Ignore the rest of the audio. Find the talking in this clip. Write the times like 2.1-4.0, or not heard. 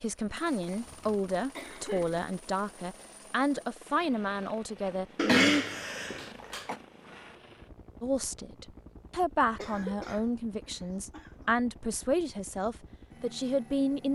0.0-5.7, 8.0-14.1.